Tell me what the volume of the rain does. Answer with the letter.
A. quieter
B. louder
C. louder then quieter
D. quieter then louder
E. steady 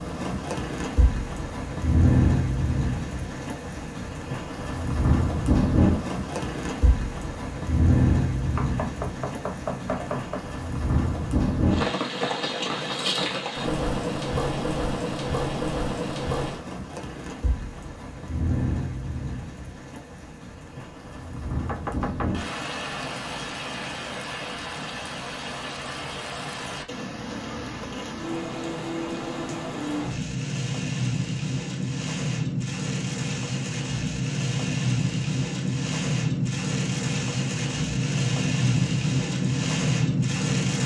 D.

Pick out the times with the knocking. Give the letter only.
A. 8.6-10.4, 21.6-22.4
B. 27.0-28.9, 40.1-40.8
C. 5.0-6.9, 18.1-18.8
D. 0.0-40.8
A.